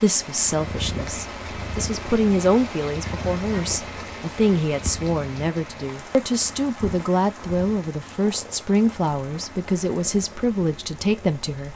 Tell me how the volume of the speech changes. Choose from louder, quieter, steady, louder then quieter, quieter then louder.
steady.